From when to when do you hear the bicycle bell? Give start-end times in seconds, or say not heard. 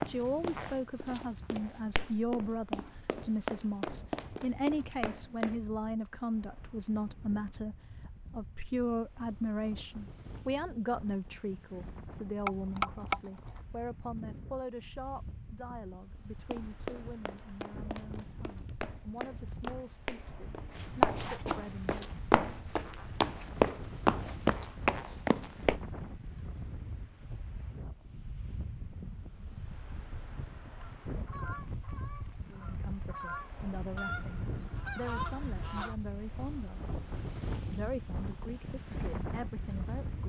12.4-13.7.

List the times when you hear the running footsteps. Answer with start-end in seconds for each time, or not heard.
0.0-5.6, 16.4-25.8.